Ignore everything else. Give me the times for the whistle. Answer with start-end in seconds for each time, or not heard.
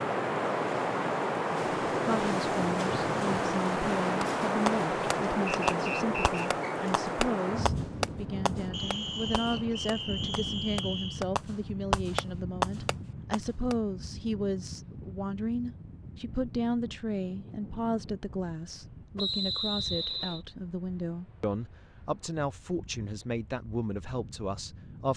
5.5-6.8, 8.7-11.2, 19.1-20.4.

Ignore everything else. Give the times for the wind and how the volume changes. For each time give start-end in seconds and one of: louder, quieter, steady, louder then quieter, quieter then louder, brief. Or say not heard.
0.0-25.1 quieter.